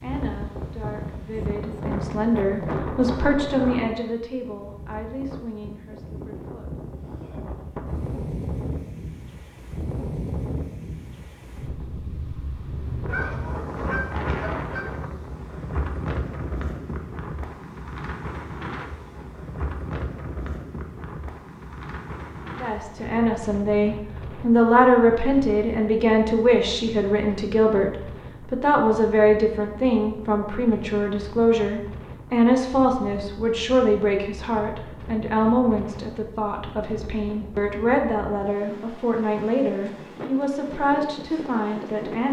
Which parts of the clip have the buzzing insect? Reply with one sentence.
You can't hear the buzzing insect here.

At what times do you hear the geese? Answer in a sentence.
The geese can be heard from 13.1 to 14.9 s.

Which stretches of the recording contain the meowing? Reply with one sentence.
The meowing can't be heard in this clip.